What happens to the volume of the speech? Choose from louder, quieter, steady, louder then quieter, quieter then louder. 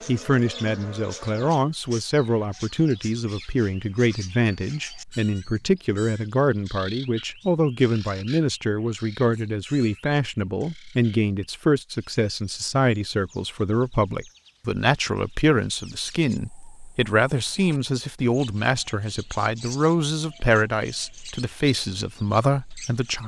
steady.